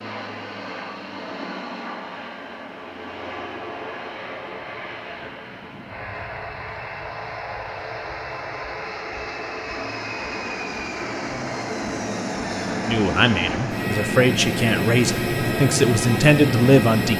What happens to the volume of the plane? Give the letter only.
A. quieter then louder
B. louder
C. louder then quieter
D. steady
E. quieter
B.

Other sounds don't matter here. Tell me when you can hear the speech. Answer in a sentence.
The speech can be heard from 12.8 to 17.1 s.